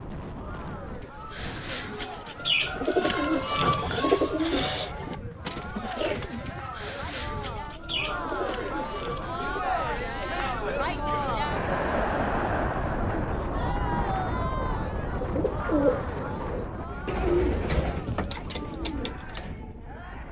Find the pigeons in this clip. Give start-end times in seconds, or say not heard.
0.9-9.8, 14.9-20.2.